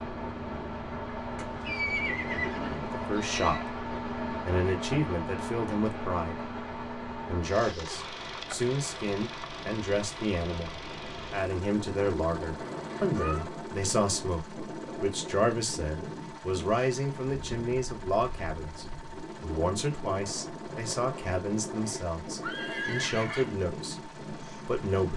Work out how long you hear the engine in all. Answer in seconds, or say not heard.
25 s.